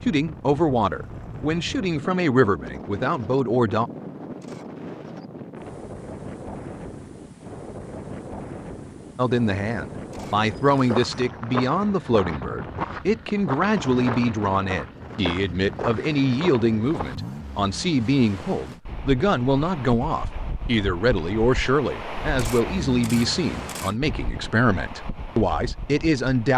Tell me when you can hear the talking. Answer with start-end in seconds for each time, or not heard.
0.1-3.9, 9.2-26.5.